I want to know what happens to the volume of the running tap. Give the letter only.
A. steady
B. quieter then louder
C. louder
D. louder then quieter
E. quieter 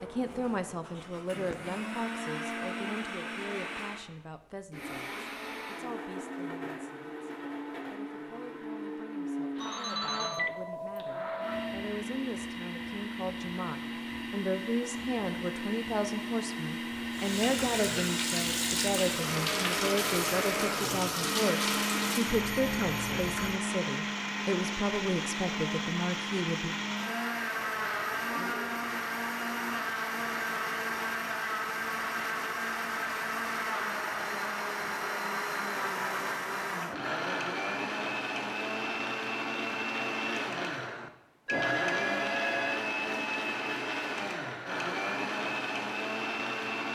A.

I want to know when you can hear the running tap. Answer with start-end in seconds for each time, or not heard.
17.1-22.4.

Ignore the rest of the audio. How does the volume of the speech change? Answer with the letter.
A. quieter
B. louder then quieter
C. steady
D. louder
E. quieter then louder
E.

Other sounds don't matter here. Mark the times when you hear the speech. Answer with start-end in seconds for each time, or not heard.
0.0-26.8.